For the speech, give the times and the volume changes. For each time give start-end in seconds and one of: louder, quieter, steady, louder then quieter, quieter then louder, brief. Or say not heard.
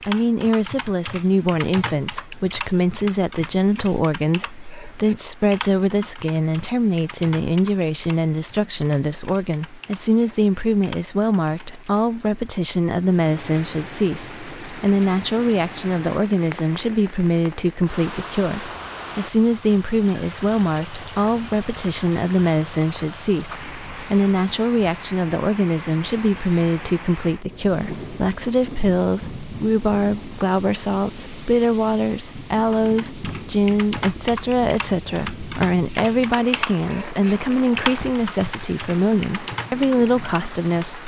0.1-41.0 steady.